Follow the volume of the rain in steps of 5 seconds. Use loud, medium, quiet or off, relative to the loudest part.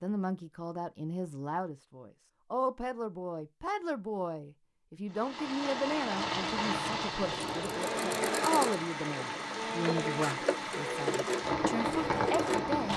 off, loud, loud.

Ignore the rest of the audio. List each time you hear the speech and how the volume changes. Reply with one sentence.
The speech can be heard from 0.0 to 12.9 s, at a steady volume.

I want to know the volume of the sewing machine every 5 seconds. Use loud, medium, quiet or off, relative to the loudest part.
off, loud, loud.